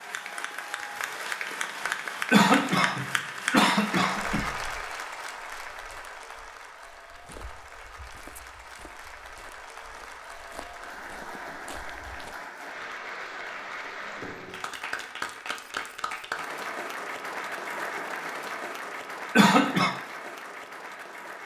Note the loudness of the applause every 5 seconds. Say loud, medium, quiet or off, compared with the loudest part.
loud, medium, medium, loud, medium.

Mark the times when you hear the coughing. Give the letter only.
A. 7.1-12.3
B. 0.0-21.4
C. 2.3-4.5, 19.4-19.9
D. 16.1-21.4
C.